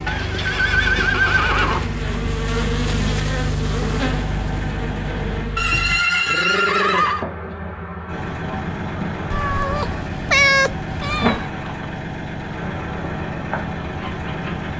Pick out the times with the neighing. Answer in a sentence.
You can hear the neighing from 0.1 to 1.9 s, from 5.5 to 7.2 s and from 11.3 to 11.9 s.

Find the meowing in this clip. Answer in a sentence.
The meowing can be heard from 9.3 to 11.5 s.